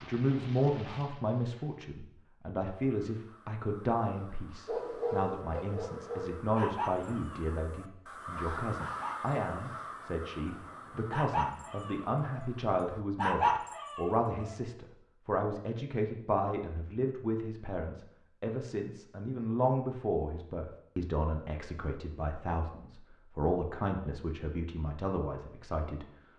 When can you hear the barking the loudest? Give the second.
13 s.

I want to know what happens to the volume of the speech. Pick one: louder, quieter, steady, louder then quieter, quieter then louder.
steady.